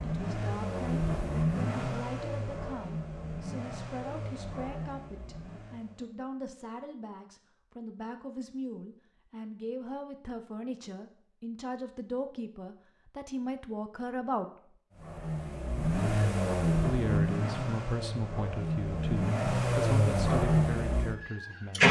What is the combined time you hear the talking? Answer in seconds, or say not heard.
20 s.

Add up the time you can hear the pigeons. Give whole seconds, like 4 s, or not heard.
not heard.